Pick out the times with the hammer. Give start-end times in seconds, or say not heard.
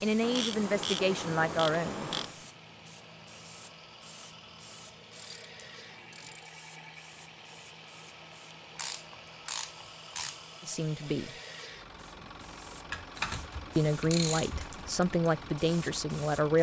not heard.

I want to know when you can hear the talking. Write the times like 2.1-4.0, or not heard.
0.0-2.1, 10.6-11.3, 13.8-16.5.